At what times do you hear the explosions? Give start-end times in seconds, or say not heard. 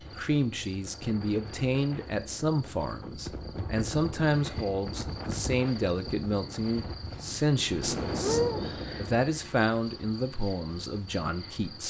7.8-9.2.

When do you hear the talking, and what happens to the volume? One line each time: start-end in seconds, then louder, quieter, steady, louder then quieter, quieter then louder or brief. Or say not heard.
0.1-11.8 steady.